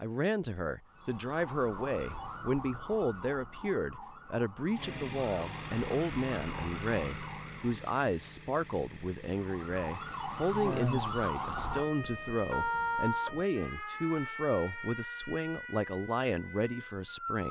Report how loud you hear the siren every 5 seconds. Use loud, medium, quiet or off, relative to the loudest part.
medium, medium, loud, medium.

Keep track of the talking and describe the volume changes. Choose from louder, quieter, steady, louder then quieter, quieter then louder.
steady.